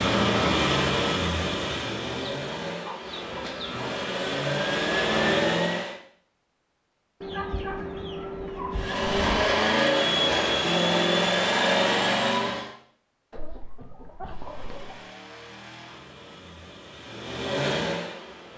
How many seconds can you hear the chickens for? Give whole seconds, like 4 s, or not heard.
6 s.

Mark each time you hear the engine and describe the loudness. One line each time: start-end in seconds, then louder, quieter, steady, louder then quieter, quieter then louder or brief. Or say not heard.
0.0-6.0 quieter then louder
8.7-12.8 steady
14.2-18.5 louder.